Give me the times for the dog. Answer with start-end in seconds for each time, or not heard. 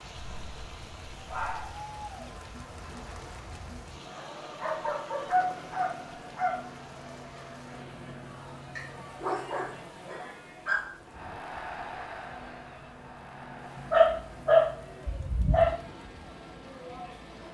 0.1-1.8, 4.6-6.7, 8.8-10.8, 13.9-15.8.